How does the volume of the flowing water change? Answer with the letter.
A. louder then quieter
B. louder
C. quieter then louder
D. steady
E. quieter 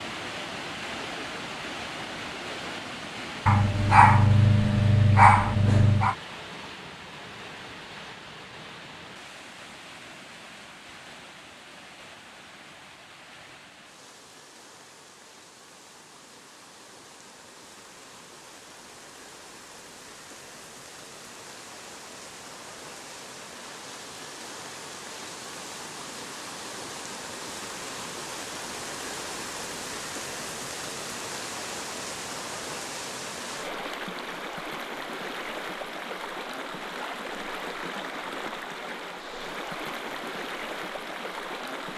C.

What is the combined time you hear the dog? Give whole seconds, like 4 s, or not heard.
3 s.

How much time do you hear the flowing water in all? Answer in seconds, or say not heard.
42 s.